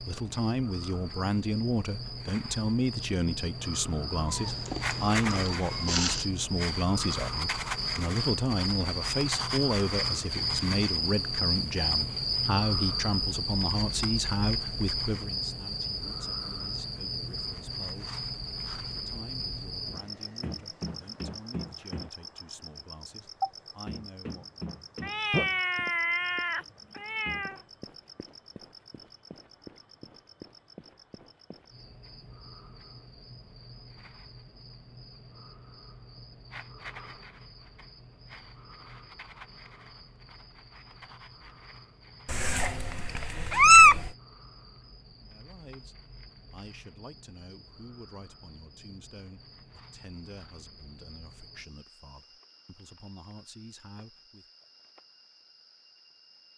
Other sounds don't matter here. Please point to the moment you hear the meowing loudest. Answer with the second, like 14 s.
44 s.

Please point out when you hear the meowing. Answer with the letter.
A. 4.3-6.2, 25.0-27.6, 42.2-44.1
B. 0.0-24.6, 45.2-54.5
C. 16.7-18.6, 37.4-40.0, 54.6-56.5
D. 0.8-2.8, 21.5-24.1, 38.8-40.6
A.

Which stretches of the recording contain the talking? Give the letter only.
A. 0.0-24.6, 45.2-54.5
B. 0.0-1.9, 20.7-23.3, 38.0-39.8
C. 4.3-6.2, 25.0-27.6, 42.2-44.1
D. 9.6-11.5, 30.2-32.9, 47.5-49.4
A.